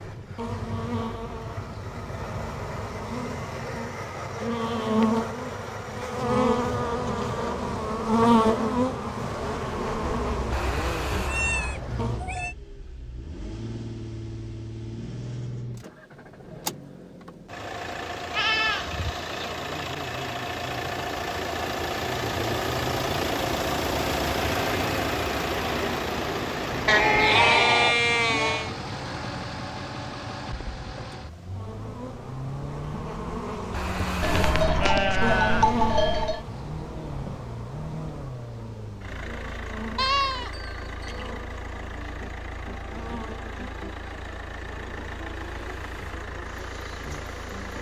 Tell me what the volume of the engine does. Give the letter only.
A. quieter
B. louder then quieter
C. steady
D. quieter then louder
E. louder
B.